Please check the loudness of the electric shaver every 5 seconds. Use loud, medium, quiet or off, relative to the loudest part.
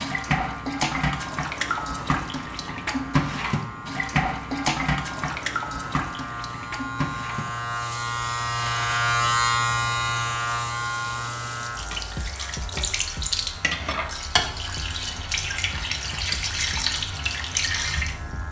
quiet, loud, medium, quiet.